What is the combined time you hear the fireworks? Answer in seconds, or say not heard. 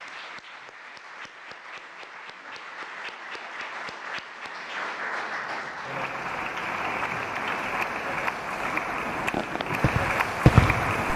2 s.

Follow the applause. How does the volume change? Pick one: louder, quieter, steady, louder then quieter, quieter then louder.
louder.